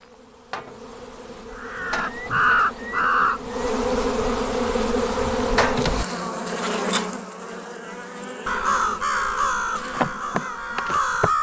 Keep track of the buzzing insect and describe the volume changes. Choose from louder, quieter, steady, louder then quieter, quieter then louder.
louder then quieter.